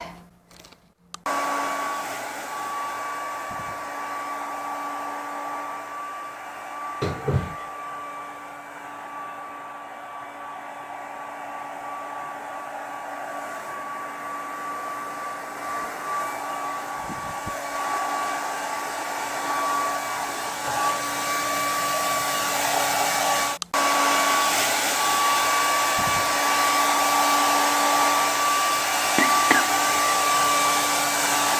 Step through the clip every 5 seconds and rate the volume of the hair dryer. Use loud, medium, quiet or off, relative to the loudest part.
medium, quiet, quiet, medium, loud, loud, loud.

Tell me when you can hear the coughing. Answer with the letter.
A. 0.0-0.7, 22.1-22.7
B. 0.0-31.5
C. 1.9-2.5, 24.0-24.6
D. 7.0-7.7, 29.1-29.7
D.